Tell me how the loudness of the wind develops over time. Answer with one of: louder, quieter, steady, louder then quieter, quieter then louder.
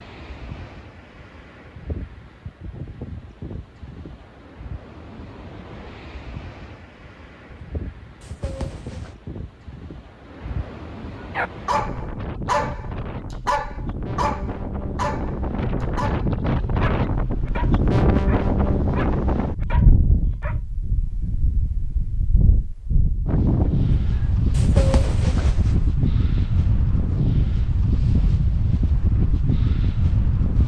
louder.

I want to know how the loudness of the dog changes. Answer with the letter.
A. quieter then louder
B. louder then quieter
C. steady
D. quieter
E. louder
D.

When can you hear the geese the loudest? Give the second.
25 s.